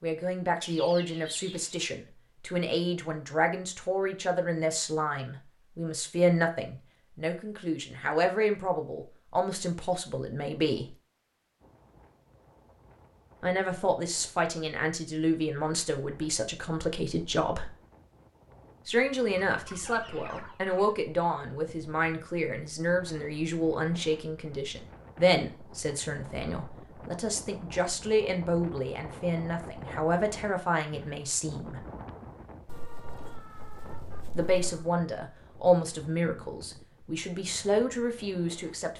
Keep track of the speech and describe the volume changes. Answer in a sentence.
The loudness of the speech stays about the same.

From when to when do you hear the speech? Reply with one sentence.
You can hear the speech from 0.0 to 10.8 s, from 13.4 to 17.8 s, from 18.9 to 31.8 s and from 34.4 to 38.9 s.